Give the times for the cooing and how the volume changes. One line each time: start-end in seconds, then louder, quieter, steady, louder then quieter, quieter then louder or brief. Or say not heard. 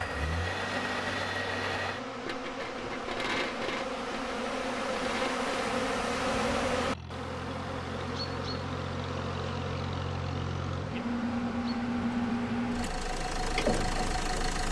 not heard.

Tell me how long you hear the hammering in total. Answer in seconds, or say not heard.
not heard.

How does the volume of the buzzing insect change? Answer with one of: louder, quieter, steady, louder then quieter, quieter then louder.
louder then quieter.